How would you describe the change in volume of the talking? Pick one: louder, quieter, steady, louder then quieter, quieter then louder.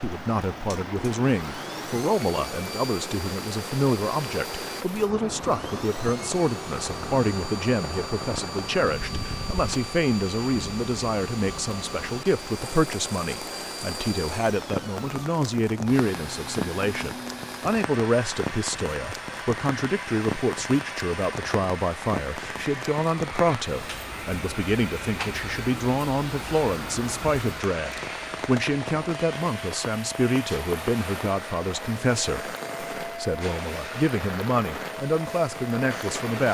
steady.